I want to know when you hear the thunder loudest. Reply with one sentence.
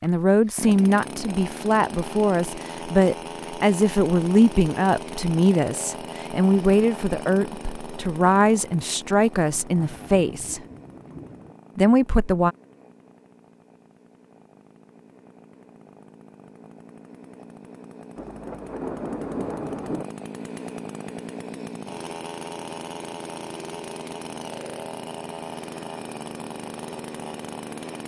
The volume of the thunder peaks at 19 seconds.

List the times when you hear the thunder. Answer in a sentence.
The thunder can be heard from 9.7 to 11.6 s and from 18.1 to 20.1 s.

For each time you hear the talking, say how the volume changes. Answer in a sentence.
You can hear the talking from 0.0 to 10.6 s, at a steady volume; and briefly from 11.8 to 12.6 s.